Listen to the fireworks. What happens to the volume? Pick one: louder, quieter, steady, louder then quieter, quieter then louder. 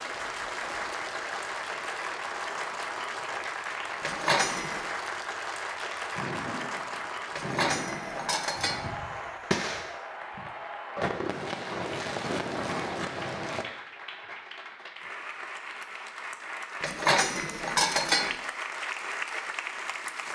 louder.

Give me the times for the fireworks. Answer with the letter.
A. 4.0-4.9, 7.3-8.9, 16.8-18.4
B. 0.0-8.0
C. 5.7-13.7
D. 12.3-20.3
C.